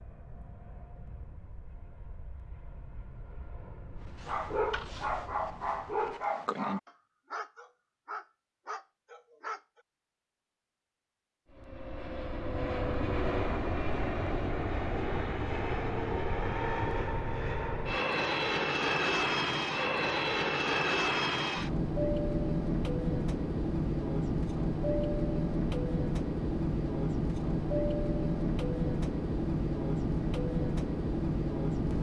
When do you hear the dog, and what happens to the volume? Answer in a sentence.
The dog can be heard from 4.0 to 9.8 s, getting quieter.